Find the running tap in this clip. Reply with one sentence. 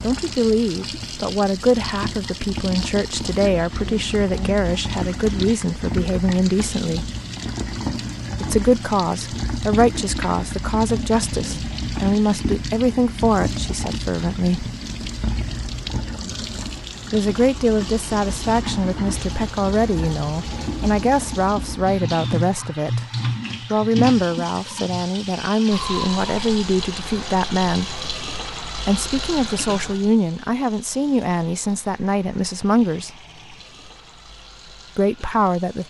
The running tap can be heard from 0.0 to 35.8 s.